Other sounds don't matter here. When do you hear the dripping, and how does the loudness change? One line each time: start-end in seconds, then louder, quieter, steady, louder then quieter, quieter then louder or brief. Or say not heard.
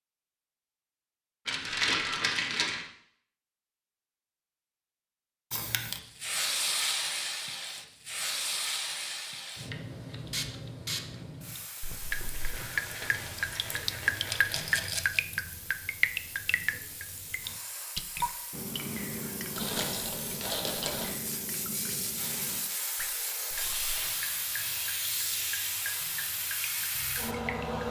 11.6-27.8 quieter.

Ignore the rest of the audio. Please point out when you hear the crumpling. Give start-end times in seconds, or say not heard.
1.4-2.9, 12.1-14.9, 19.6-21.1.